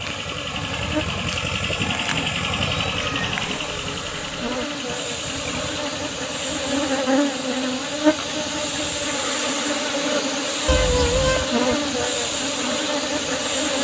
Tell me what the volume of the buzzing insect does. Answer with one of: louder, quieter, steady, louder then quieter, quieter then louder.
louder.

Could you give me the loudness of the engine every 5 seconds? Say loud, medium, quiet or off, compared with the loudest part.
loud, medium, medium.